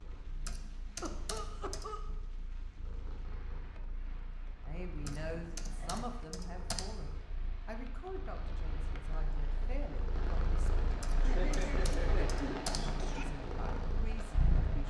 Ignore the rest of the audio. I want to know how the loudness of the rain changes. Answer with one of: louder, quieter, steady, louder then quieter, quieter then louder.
louder.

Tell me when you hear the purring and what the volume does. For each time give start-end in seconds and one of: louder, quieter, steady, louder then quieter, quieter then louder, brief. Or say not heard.
0.0-14.8 louder.